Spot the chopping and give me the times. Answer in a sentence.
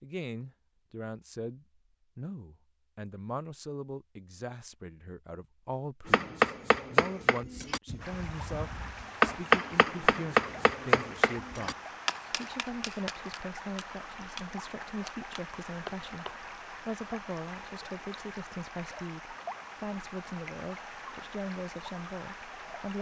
The chopping can be heard from 6.0 to 16.4 s.